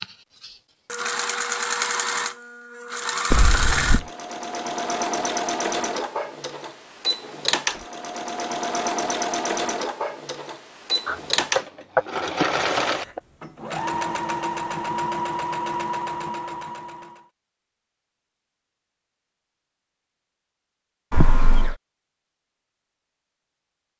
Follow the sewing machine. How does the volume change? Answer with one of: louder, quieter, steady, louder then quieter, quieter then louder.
steady.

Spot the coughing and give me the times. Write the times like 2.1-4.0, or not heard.
3.3-4.0, 11.1-13.2, 21.1-21.8.